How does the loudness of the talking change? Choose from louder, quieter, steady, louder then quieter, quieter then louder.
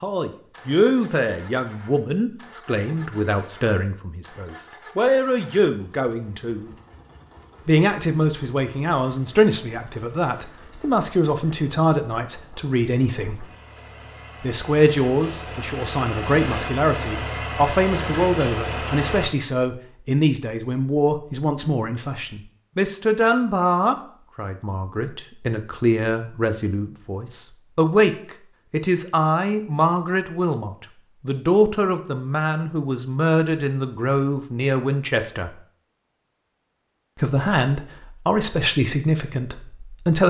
steady.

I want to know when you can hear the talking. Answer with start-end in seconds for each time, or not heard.
0.0-6.7, 7.7-13.4, 14.4-35.5, 37.2-40.2.